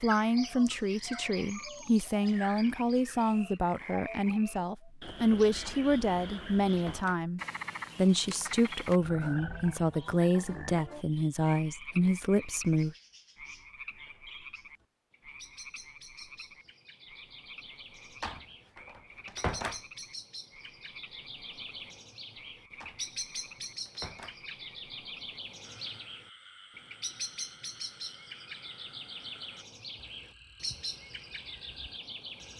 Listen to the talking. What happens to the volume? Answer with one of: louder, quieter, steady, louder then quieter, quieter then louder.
steady.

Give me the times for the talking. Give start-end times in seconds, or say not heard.
0.0-12.9.